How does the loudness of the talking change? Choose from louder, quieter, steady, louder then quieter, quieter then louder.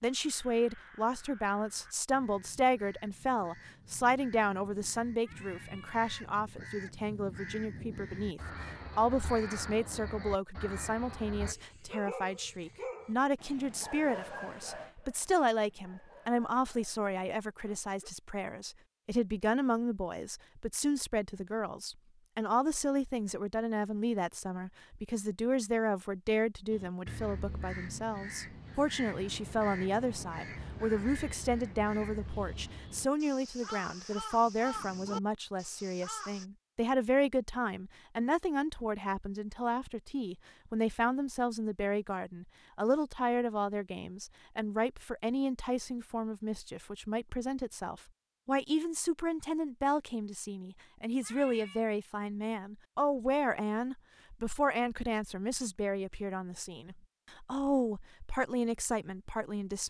steady.